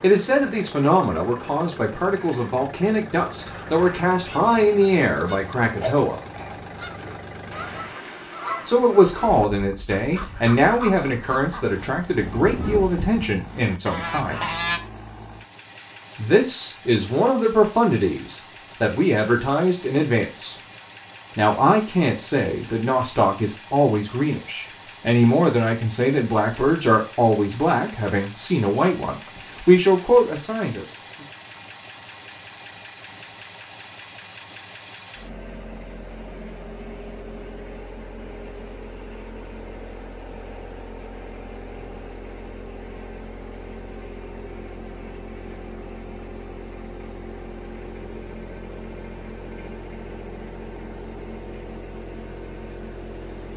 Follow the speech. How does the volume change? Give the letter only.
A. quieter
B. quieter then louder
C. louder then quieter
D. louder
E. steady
E.